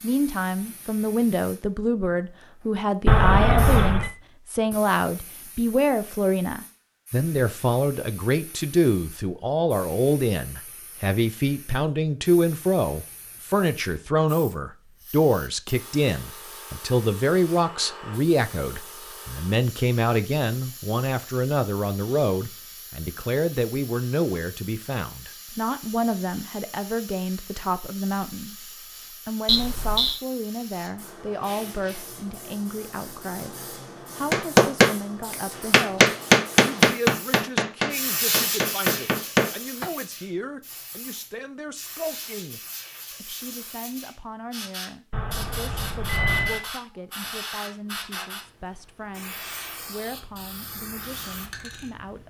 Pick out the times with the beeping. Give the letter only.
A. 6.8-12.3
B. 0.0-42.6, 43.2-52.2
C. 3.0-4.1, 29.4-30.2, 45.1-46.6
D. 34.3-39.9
C.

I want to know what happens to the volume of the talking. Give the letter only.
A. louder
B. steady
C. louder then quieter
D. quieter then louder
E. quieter
E.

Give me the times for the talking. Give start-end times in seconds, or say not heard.
0.0-42.6, 43.2-52.2.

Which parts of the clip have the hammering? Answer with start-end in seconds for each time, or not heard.
34.3-39.9.